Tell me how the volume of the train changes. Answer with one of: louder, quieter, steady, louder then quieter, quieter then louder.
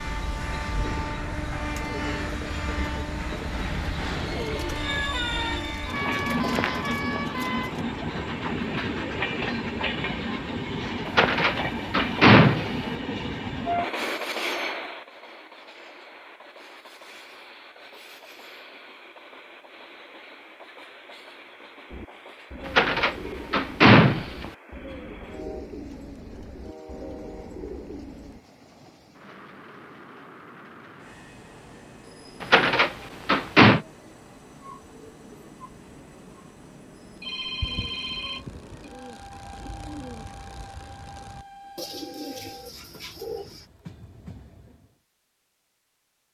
quieter.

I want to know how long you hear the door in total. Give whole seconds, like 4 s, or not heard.
5 s.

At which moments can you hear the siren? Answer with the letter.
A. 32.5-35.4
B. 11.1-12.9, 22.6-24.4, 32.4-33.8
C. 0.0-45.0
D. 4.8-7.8
D.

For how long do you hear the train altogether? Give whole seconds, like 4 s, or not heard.
45 s.